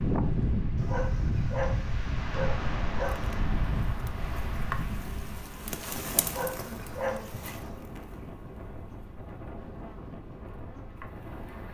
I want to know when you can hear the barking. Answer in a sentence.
You can hear the barking from 0.8 to 3.3 s and from 6.2 to 7.7 s.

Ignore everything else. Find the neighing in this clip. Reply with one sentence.
The neighing can't be heard in this clip.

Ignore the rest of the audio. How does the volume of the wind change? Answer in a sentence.
The loudness of the wind goes down.